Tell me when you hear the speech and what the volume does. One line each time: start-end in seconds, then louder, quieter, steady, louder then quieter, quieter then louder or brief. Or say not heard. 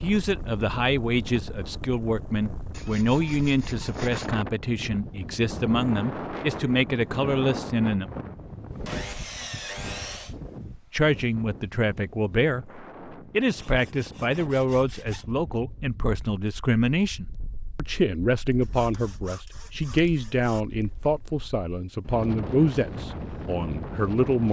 0.0-8.1 steady
10.9-24.4 steady.